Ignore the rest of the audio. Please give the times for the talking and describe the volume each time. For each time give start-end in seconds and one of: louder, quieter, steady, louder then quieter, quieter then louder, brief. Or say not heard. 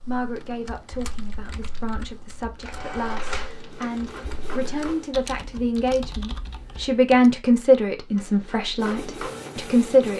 0.0-10.1 louder then quieter.